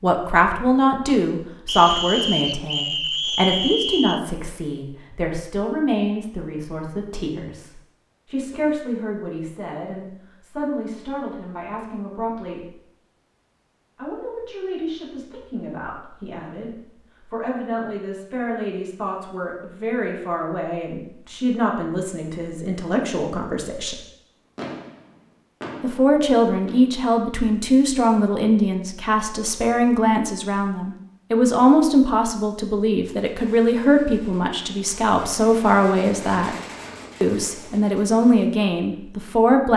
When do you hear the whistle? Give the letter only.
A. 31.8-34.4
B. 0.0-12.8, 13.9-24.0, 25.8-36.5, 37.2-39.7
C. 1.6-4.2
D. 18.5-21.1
C.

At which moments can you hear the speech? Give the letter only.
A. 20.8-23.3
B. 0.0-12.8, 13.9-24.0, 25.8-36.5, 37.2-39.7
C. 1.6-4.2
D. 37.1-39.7
B.